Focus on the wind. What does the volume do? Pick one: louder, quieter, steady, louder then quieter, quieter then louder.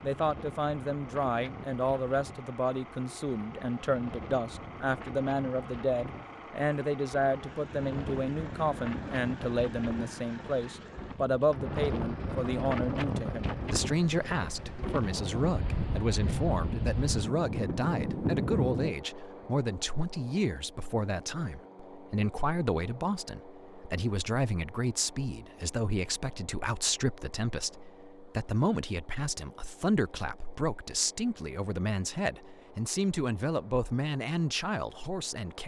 louder.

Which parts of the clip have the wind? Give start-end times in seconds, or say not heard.
0.0-18.9.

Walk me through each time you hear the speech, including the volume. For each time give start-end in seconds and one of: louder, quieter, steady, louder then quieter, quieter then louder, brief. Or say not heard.
0.0-35.6 steady.